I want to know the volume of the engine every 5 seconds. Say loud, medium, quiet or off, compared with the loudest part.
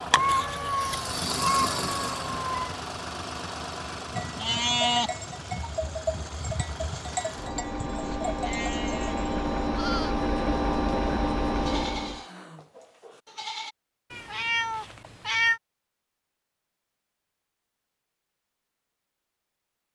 medium, medium, loud, off.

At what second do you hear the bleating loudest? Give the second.
5 s.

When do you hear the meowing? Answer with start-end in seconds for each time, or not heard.
0.1-2.9, 14.1-15.6.